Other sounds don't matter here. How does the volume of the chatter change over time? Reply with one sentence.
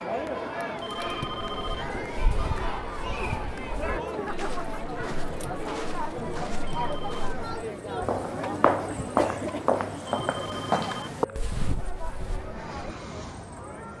The volume of the chatter goes down.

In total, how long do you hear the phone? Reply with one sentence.
The phone can be heard for 3 seconds in total.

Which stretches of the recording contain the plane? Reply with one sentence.
You can hear the plane from 12.4 to 13.9 s.